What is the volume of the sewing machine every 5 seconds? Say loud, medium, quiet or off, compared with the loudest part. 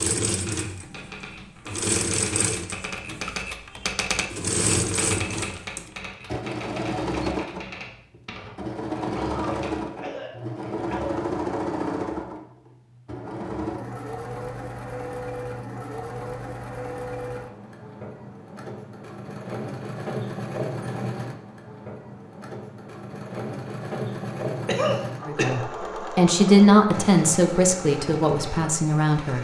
loud, loud, loud, medium, loud, medium.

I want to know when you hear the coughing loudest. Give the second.
25 s.